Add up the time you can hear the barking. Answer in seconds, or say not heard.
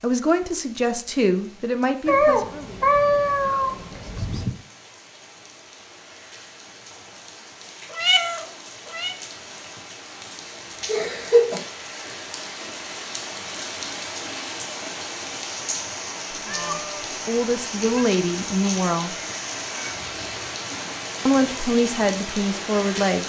not heard.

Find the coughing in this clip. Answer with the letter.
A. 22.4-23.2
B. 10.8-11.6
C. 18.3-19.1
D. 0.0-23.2
B.